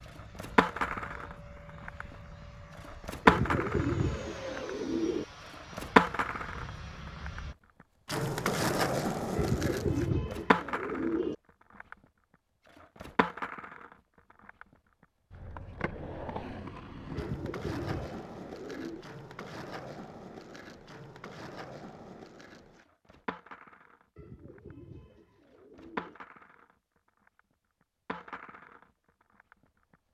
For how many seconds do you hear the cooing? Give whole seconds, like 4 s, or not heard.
8 s.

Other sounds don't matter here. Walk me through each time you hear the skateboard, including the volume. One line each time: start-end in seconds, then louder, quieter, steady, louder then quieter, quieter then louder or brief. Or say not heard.
0.1-30.0 quieter.